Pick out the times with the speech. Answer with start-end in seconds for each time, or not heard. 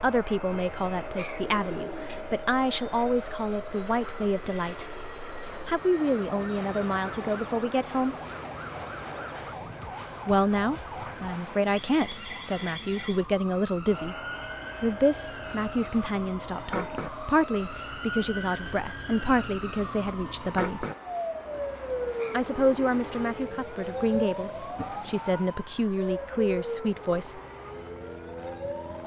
0.0-5.0, 5.7-8.2, 10.2-14.2, 14.8-20.9, 22.3-27.4.